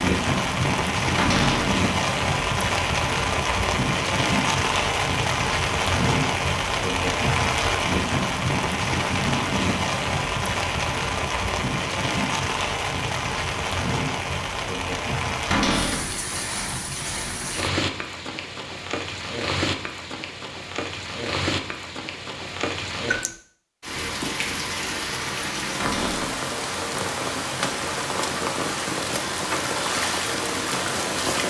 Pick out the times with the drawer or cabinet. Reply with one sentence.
You can hear the drawer or cabinet from 1.1 to 1.8 s, from 15.5 to 16.1 s and from 25.8 to 26.4 s.